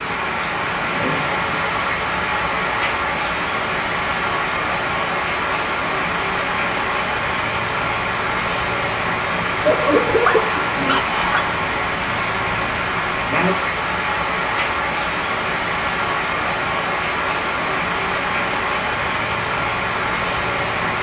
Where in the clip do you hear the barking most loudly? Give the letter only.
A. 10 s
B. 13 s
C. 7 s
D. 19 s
A.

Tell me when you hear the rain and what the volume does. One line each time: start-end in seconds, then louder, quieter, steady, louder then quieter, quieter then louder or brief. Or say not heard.
0.0-20.9 steady.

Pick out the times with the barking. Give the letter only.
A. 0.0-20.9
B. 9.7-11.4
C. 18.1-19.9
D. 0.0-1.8
B.